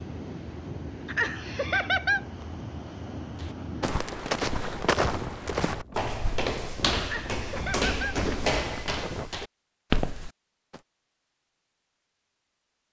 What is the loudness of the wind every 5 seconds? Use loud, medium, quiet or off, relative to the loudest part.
loud, loud, off.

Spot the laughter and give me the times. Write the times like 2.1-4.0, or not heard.
1.1-2.2, 7.0-8.2.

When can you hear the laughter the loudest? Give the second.
2 s.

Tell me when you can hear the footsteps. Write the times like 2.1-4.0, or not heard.
3.4-10.8.